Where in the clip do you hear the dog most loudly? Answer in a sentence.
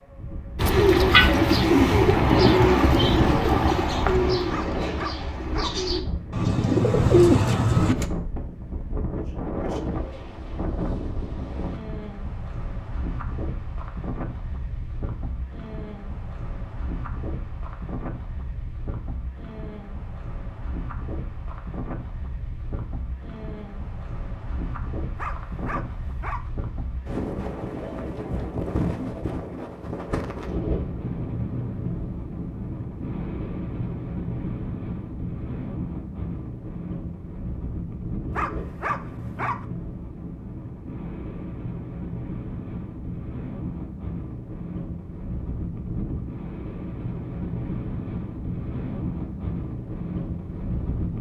The volume of the dog peaks at 39 seconds.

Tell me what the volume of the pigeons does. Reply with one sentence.
The volume of the pigeons goes down, then up.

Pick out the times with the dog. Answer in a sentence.
You can hear the dog from 4.5 to 5.8 s, from 25.1 to 26.5 s and from 38.3 to 39.6 s.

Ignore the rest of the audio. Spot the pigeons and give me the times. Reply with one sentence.
The pigeons can be heard from 0.6 to 8.1 s.